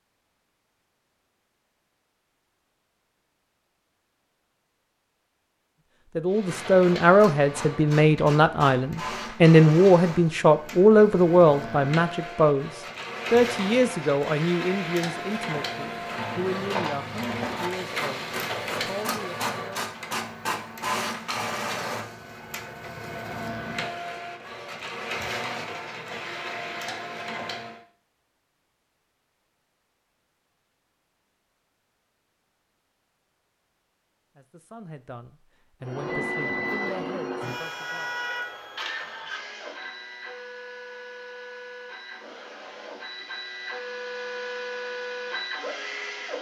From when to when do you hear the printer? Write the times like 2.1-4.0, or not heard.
6.2-27.8, 35.8-46.3.